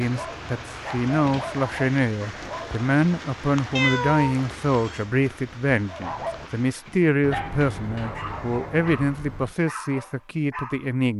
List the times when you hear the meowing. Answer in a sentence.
You can hear the meowing from 3.8 to 5.0 s.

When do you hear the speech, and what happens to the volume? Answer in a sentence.
The speech can be heard from 0.0 to 11.1 s, at a steady volume.